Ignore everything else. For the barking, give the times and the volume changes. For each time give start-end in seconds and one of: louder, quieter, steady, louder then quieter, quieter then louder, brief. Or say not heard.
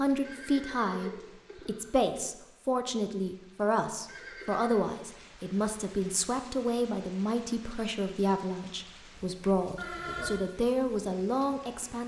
not heard.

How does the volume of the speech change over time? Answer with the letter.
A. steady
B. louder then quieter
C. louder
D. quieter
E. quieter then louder
A.